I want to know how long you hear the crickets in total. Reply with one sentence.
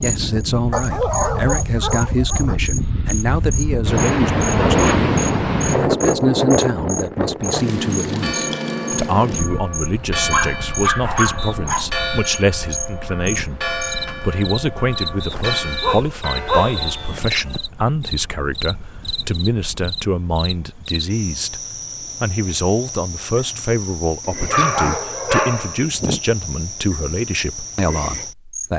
The crickets can be heard for 29 seconds in total.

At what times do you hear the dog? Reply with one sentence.
The dog can be heard from 0.7 to 2.6 s, from 10.3 to 11.9 s, from 15.3 to 17.6 s and from 24.4 to 26.2 s.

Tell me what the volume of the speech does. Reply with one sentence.
The loudness of the speech stays about the same.